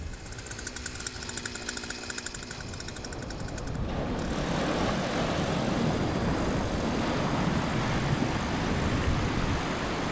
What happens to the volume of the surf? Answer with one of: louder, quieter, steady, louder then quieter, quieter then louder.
louder.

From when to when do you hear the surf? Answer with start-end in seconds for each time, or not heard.
0.0-10.0.